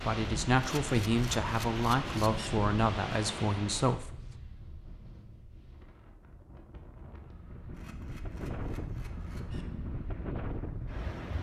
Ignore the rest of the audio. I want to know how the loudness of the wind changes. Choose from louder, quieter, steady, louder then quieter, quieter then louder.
quieter then louder.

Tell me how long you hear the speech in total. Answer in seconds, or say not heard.
4 s.